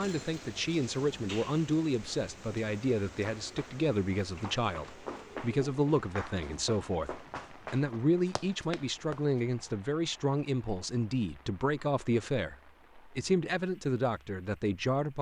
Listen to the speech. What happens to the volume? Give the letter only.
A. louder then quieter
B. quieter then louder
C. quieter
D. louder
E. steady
E.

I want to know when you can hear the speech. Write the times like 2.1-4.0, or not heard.
0.0-15.1.